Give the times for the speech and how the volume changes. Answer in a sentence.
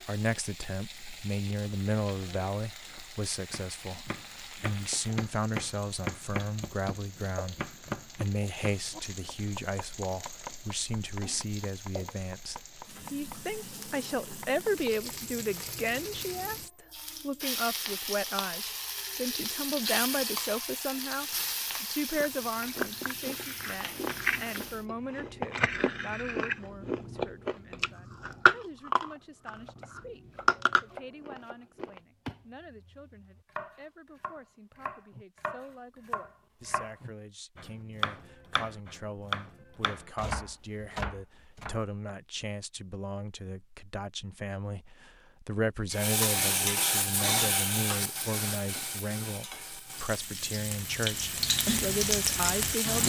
The speech can be heard from 0.0 to 53.0 s, getting quieter then louder.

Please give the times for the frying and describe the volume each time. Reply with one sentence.
The frying can be heard from 0.0 to 24.9 s, getting louder; and from 45.9 to 53.0 s, getting quieter then louder.